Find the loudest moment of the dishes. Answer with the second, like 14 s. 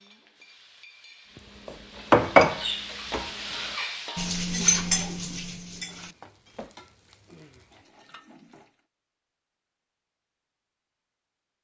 2 s.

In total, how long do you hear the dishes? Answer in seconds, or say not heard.
5 s.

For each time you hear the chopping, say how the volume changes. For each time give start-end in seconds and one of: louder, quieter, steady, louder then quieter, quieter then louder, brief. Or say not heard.
not heard.